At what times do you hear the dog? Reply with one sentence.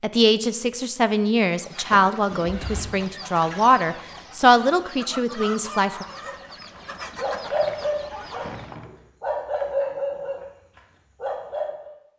The dog can be heard from 6.2 to 11.9 s.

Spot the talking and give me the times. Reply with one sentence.
You can hear the talking from 0.0 to 6.0 s.